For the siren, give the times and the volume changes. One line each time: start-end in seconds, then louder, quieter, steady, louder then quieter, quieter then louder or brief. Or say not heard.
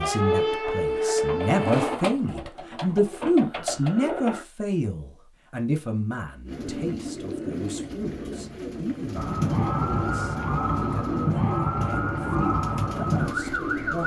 0.0-1.9 brief
9.2-14.0 steady.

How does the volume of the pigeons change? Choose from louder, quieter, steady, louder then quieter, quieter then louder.
steady.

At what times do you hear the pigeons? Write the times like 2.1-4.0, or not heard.
0.1-4.5, 6.5-14.0.